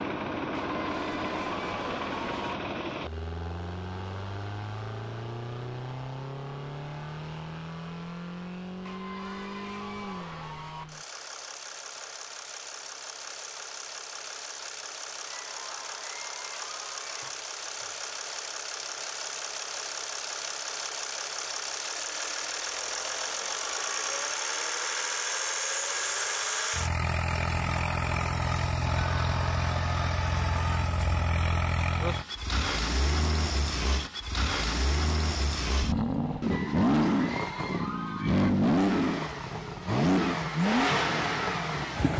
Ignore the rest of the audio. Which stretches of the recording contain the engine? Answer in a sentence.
You can hear the engine from 0.0 to 42.1 s.